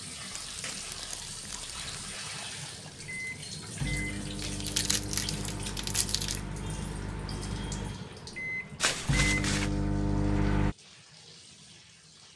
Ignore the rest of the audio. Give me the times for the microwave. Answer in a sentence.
You can hear the microwave from 3.1 to 10.8 s.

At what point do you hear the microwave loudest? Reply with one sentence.
The volume of the microwave peaks at 10 seconds.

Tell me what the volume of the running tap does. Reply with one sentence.
The loudness of the running tap goes down.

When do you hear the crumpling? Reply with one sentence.
You can hear the crumpling from 0.3 to 2.1 s, from 4.4 to 6.4 s and from 8.8 to 9.7 s.